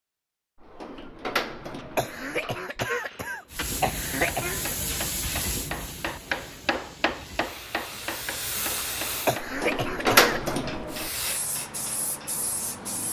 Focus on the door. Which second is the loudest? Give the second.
10 s.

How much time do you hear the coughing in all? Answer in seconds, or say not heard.
4 s.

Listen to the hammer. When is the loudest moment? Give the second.
6 s.